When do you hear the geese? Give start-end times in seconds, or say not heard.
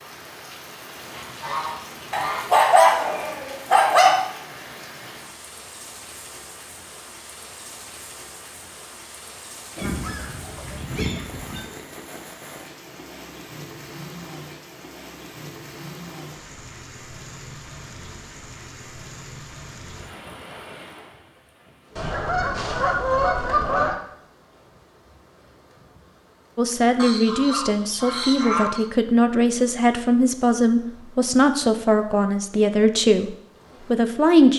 0.9-2.5, 9.8-11.7, 21.9-23.9, 26.9-28.9.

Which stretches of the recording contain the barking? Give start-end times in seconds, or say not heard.
2.1-4.2.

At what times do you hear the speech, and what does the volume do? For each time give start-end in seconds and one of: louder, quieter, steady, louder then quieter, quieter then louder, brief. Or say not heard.
26.6-34.5 steady.